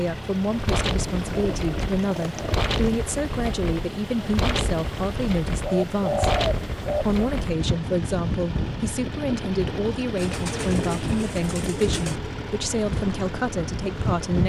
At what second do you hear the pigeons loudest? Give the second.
6 s.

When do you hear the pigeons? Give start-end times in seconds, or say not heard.
1.1-3.0, 5.6-7.2, 10.2-12.2.